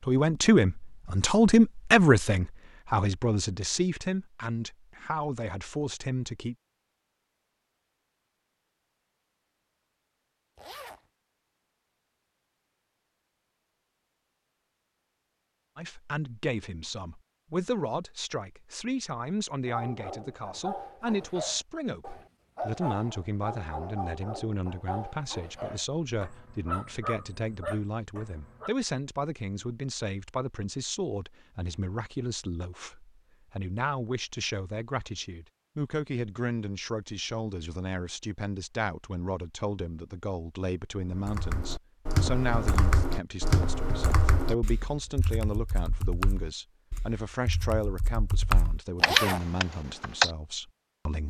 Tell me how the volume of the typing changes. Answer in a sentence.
The loudness of the typing goes down, then up.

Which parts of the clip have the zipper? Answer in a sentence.
The zipper can be heard from 10.6 to 11.1 s and from 49.0 to 49.5 s.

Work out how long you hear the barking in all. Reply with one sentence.
You can hear the barking for 9 seconds altogether.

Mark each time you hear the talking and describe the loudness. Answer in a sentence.
The talking can be heard from 0.0 to 6.5 s, getting quieter; and from 15.8 to 51.2 s, at a steady volume.